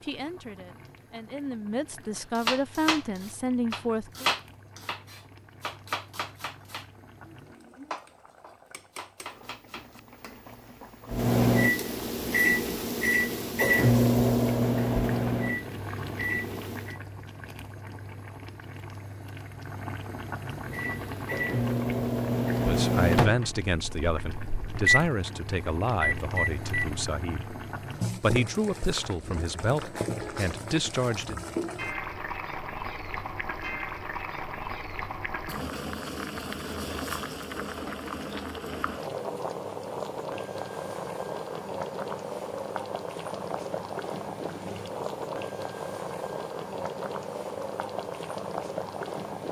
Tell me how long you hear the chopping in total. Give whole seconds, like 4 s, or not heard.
8 s.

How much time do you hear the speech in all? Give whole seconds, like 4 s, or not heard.
12 s.